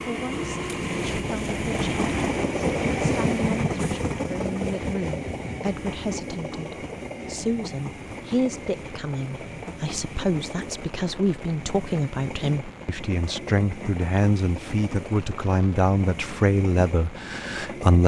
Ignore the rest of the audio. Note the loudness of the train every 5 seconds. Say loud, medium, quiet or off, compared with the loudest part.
loud, medium, medium, medium.